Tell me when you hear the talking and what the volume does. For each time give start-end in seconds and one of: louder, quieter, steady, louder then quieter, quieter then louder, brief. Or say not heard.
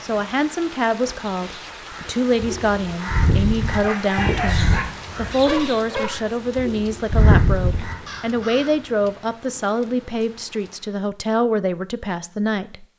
0.0-12.8 steady.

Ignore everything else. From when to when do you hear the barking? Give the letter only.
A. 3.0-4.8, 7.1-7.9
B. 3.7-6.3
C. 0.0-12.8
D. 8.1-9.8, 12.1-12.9
B.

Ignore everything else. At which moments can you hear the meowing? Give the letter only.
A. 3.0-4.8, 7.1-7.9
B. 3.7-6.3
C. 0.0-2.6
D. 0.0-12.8
A.